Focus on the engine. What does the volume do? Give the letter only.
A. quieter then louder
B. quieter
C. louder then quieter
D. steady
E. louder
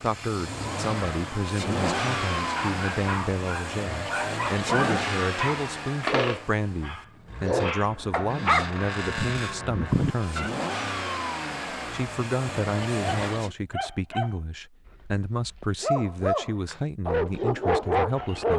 A.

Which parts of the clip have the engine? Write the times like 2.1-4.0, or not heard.
0.0-13.6.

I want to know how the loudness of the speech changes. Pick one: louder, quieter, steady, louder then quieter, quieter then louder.
steady.